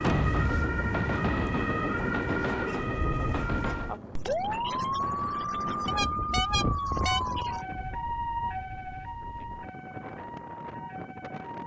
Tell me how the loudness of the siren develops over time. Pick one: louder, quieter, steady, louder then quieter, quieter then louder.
quieter.